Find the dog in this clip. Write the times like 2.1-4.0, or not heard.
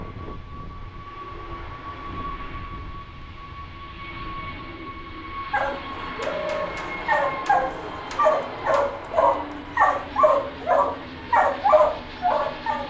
5.5-12.8.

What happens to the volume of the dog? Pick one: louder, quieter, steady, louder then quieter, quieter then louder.
louder.